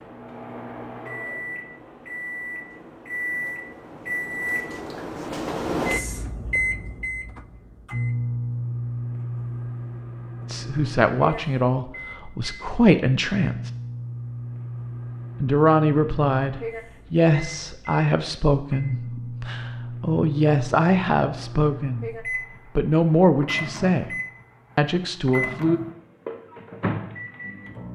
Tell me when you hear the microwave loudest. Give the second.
6 s.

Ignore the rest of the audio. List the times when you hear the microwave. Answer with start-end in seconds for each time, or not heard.
0.0-27.9.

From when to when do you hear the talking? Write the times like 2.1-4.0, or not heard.
10.4-13.7, 15.4-24.1, 24.8-25.8.